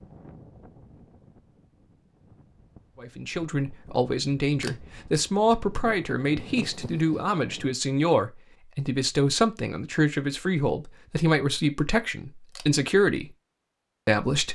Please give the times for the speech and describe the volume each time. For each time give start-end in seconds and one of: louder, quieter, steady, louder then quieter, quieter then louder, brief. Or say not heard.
3.0-13.3 steady
14.1-14.5 brief.